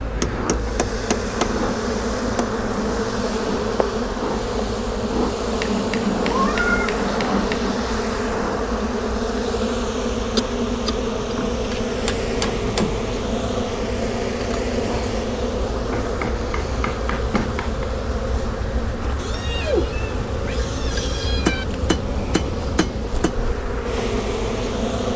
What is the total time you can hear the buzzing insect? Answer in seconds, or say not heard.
25 s.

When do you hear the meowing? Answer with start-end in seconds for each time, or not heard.
6.2-6.9, 19.1-21.6.